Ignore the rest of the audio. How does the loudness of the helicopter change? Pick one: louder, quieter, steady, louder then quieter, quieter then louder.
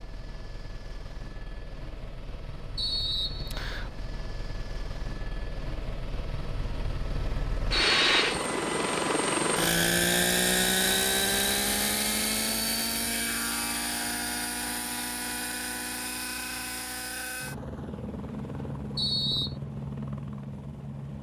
louder then quieter.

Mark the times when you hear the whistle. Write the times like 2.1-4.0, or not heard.
2.8-3.9, 7.8-8.3, 18.9-19.6.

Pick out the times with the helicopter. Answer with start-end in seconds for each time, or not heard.
0.0-21.1.